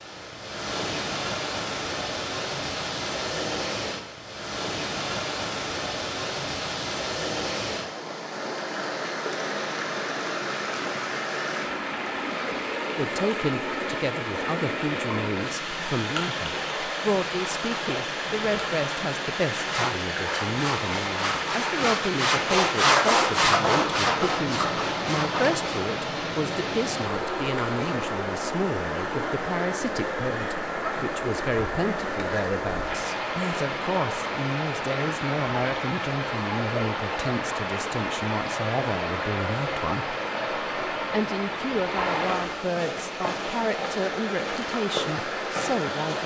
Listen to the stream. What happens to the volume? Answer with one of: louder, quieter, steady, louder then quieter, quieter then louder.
steady.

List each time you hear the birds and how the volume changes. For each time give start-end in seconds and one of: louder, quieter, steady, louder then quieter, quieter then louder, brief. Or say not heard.
not heard.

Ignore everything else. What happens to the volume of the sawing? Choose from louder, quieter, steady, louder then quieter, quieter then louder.
louder then quieter.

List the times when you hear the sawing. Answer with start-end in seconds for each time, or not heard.
19.6-25.7.